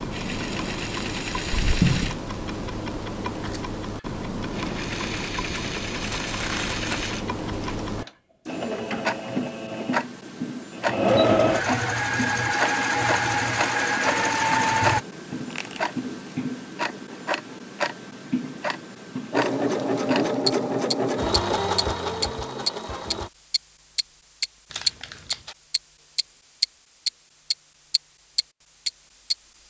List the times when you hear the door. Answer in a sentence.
The door can be heard from 1.5 to 2.1 s.